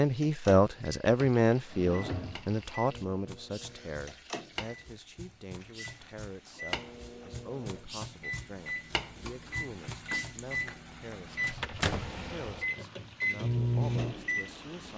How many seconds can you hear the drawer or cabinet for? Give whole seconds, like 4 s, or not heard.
3 s.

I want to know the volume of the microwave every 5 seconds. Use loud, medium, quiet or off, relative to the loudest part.
quiet, medium, loud.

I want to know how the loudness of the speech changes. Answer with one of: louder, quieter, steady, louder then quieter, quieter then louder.
quieter.